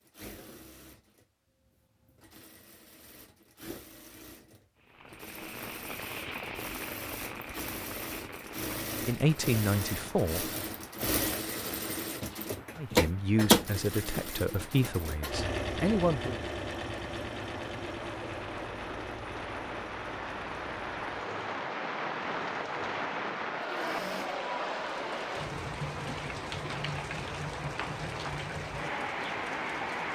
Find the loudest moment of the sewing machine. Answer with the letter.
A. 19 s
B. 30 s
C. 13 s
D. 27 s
C.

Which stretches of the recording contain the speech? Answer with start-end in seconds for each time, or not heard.
9.1-10.5, 12.8-16.4.